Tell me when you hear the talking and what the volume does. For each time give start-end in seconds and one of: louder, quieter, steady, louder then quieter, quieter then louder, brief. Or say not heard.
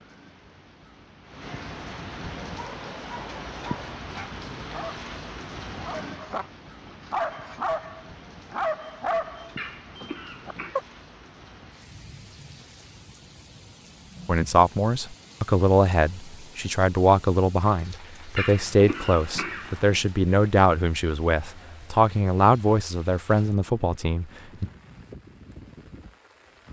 14.2-24.7 steady.